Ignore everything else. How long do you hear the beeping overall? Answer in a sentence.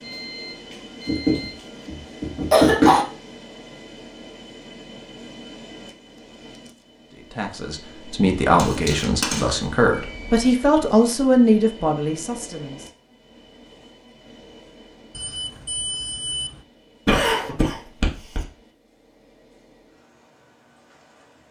You can hear the beeping for 4 seconds altogether.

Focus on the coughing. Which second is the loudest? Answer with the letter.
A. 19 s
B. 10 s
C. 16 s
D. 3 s
D.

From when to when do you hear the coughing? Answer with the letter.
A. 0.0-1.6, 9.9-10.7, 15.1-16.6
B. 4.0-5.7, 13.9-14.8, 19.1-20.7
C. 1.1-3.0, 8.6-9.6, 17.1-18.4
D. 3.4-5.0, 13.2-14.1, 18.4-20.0
C.